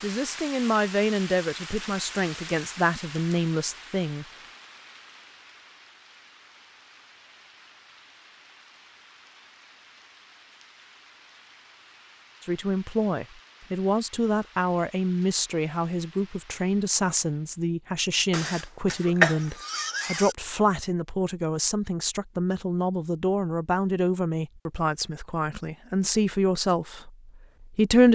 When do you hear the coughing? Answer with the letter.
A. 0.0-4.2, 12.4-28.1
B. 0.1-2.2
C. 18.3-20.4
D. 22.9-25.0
C.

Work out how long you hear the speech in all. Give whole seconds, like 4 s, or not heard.
20 s.